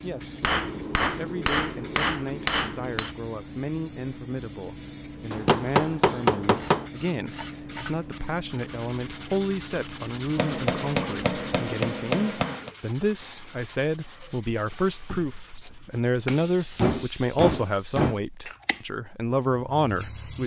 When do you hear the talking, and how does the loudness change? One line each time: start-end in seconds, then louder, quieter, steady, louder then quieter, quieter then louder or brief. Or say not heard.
0.0-20.4 louder.